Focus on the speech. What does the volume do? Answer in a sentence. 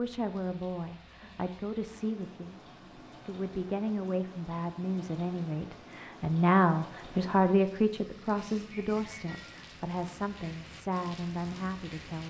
The loudness of the speech goes up, then down.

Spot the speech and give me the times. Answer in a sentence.
You can hear the speech from 0.0 to 12.2 s.